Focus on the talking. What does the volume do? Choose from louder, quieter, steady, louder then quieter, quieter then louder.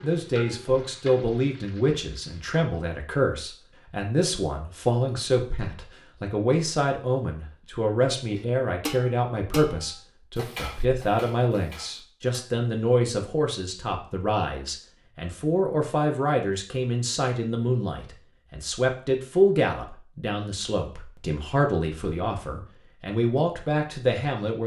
steady.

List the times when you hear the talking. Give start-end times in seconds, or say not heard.
0.0-24.6.